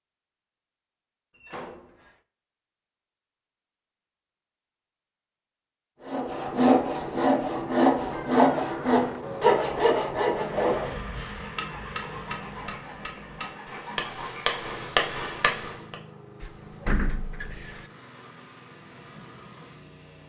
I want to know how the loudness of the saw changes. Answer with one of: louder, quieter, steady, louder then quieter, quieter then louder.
quieter.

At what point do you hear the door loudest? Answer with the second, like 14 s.
17 s.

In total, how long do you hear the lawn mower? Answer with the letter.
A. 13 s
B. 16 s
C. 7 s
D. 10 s
D.